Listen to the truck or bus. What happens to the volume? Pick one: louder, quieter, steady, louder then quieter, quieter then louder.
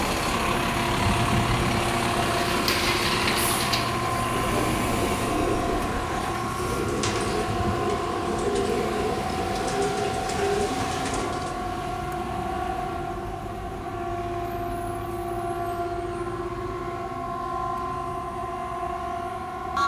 quieter.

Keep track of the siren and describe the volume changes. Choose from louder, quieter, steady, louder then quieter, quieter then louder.
steady.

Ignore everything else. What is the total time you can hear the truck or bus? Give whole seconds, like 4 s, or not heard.
20 s.